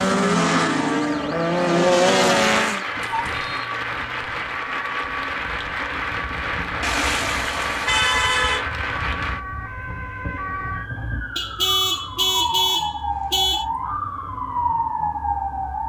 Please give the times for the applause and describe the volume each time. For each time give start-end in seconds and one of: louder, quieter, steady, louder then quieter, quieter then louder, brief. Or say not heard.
2.5-9.4 steady.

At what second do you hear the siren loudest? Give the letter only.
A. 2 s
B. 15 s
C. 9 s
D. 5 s
B.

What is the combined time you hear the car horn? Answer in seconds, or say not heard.
5 s.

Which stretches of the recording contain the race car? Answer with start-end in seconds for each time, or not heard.
0.0-2.9.